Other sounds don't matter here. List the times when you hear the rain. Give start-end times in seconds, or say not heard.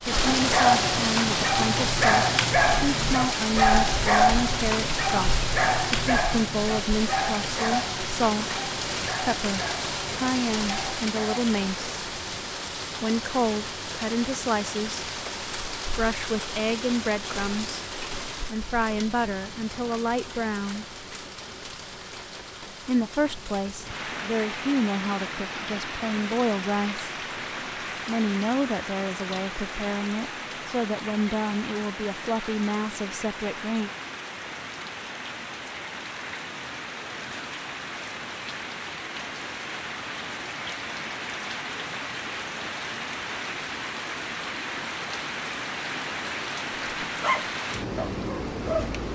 0.0-49.1.